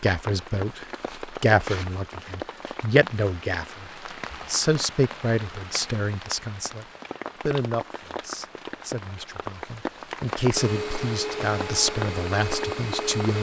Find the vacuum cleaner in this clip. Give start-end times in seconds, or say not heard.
10.6-13.3.